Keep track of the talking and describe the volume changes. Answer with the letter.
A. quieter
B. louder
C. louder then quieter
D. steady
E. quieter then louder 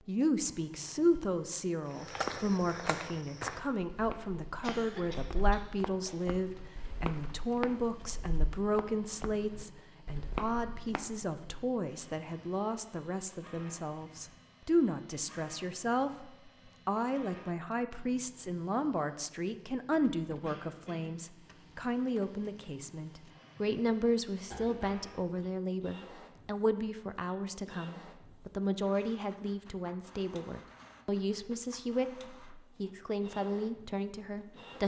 D.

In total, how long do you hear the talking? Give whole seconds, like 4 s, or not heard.
35 s.